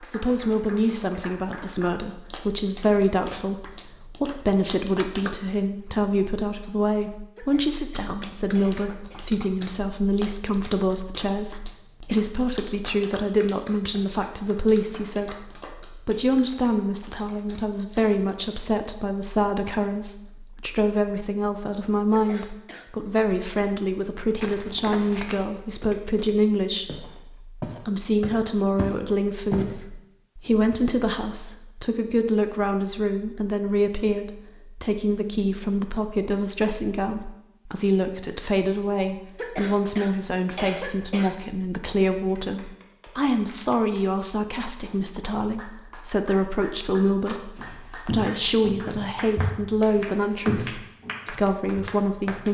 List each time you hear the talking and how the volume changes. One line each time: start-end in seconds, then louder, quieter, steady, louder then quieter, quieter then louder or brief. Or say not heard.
0.0-52.4 steady.